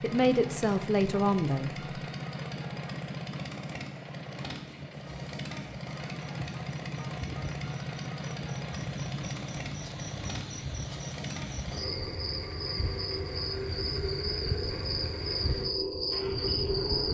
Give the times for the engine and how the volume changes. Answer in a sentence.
The engine can be heard from 0.0 to 17.0 s, getting quieter.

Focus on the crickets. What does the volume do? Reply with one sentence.
The volume of the crickets goes up.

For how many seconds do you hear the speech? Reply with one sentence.
You can hear the speech for 2 seconds altogether.